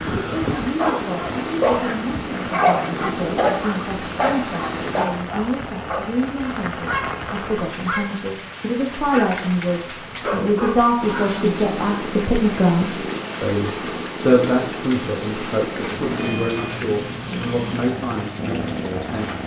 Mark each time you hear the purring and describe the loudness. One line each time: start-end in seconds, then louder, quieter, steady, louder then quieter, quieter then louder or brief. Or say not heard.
0.0-5.0 steady
11.0-19.4 steady.